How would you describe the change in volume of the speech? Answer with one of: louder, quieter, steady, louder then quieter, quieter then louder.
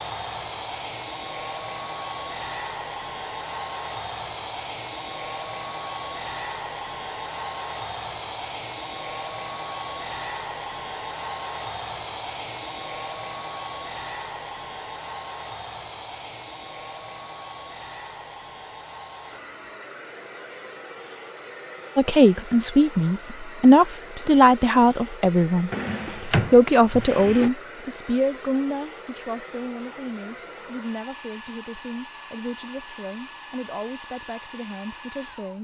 quieter.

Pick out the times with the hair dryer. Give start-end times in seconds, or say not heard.
0.0-35.5.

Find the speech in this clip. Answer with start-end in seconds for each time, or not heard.
21.9-35.5.